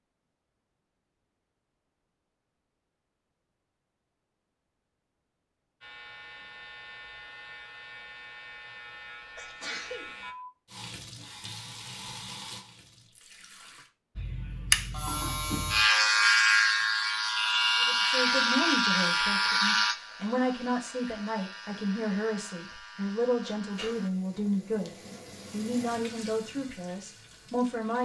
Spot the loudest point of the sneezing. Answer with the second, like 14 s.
10 s.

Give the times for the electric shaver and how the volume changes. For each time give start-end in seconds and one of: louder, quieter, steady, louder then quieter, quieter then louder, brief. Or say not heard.
5.8-10.3 steady
14.2-24.1 quieter.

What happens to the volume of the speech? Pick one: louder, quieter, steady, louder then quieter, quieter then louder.
steady.